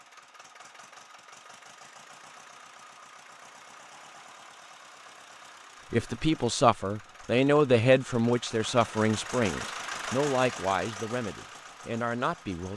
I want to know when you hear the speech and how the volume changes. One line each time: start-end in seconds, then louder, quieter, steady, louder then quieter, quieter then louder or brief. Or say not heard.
5.9-12.7 quieter.